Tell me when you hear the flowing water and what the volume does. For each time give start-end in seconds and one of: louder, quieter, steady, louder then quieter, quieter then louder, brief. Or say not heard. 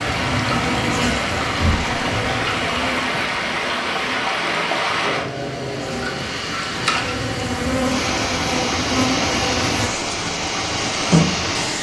0.0-11.7 steady.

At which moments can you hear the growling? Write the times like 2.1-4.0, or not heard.
5.0-6.9.